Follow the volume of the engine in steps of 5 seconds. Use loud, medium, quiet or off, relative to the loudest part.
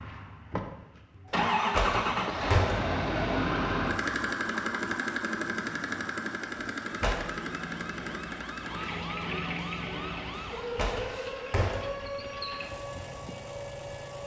loud, medium, quiet.